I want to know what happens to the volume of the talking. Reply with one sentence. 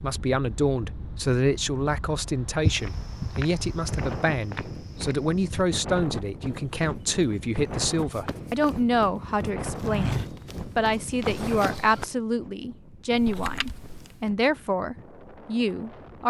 The loudness of the talking stays about the same.